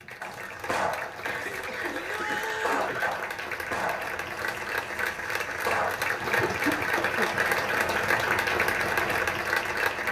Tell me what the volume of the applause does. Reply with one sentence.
The loudness of the applause goes up.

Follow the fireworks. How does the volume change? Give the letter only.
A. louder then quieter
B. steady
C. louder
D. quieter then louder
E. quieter
D.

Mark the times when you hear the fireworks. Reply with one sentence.
You can hear the fireworks from 0.2 to 9.2 s.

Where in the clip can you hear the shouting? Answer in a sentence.
The shouting can be heard from 1.9 to 2.9 s.